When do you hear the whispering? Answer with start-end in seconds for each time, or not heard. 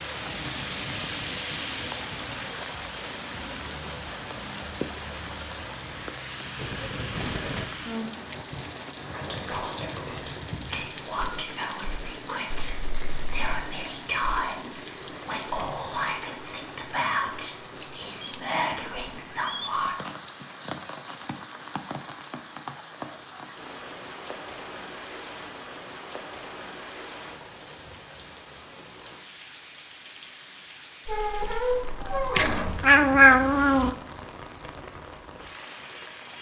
9.0-20.1.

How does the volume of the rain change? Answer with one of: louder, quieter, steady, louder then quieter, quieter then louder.
quieter.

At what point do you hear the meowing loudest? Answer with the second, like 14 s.
33 s.